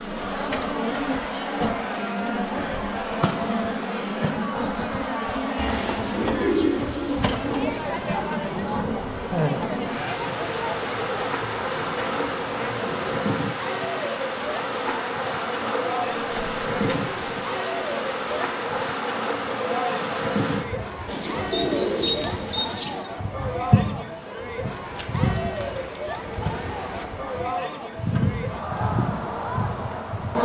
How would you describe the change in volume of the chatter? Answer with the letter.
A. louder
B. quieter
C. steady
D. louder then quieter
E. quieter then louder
C.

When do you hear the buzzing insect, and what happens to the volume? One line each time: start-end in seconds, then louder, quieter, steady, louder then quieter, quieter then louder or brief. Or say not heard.
0.0-30.4 steady.